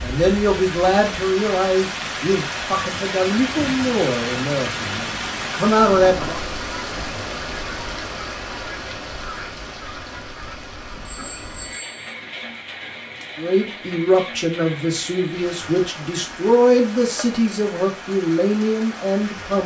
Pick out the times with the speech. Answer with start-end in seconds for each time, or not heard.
0.0-6.4, 13.3-19.6.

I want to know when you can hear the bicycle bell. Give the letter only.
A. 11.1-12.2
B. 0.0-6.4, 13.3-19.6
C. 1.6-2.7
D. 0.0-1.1
A.